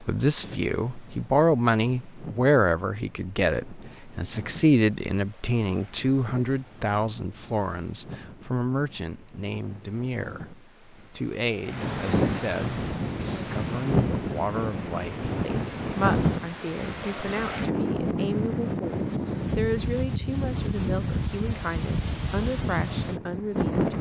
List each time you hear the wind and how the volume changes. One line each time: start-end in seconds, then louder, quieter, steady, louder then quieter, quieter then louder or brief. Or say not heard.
0.0-23.9 louder.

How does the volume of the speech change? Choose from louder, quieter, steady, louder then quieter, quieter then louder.
quieter.